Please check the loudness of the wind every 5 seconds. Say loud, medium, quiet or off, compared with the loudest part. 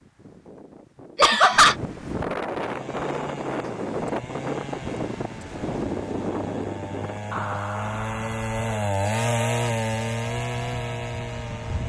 loud, loud, medium.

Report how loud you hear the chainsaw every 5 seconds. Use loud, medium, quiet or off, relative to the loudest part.
medium, loud, loud.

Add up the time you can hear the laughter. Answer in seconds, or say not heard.
2 s.